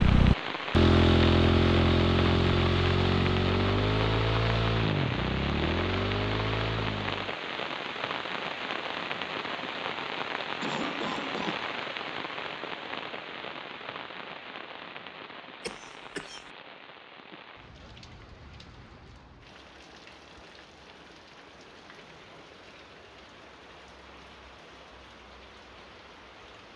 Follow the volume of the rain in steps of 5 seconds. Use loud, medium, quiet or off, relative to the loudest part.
loud, loud, loud, quiet, quiet, quiet.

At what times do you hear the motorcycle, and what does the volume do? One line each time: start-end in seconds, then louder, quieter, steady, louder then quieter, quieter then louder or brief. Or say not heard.
0.0-7.3 quieter.